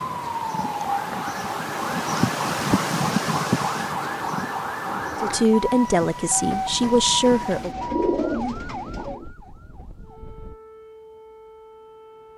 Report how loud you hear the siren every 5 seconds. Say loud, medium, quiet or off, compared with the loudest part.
loud, loud, quiet.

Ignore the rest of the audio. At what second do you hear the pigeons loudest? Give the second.
8 s.